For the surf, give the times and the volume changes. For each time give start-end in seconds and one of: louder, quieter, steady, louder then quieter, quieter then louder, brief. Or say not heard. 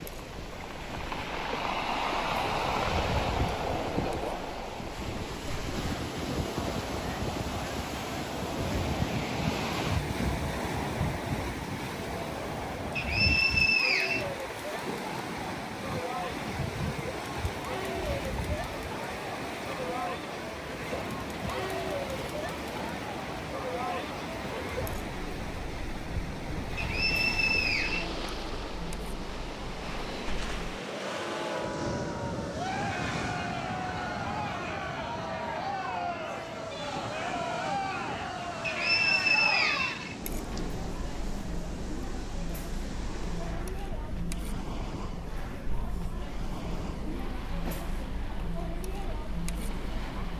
0.0-50.3 quieter.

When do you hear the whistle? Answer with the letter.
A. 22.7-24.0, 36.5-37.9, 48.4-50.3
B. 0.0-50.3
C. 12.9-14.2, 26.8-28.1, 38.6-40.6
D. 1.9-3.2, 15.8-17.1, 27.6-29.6
C.